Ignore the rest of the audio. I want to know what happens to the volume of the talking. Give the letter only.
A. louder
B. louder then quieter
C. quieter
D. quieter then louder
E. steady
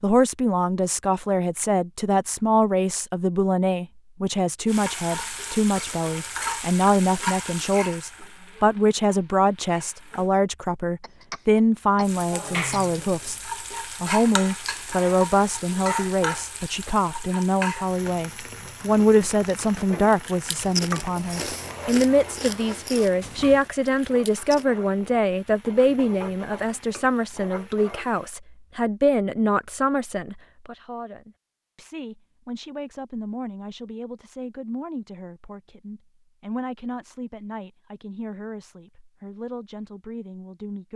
C.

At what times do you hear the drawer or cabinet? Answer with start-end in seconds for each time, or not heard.
not heard.